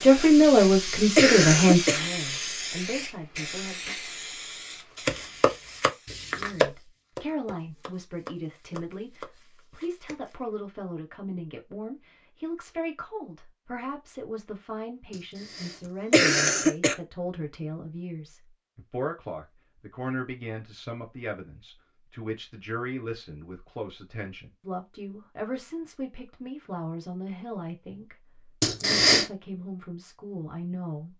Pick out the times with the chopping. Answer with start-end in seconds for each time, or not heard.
5.0-10.3.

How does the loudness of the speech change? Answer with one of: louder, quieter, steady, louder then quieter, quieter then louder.
quieter.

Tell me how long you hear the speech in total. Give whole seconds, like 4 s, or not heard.
29 s.